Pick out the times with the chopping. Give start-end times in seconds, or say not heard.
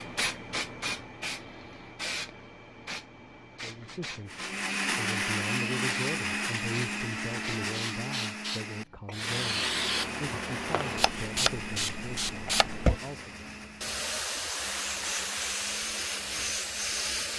not heard.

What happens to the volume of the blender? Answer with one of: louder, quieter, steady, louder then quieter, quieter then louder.
quieter.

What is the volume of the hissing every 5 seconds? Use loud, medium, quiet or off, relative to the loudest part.
medium, loud, loud, loud.